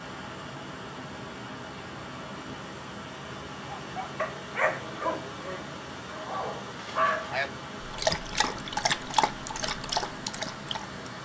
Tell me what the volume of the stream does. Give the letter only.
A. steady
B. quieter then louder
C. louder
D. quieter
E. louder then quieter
A.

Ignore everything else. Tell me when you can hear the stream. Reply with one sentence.
The stream can be heard from 0.0 to 11.2 s.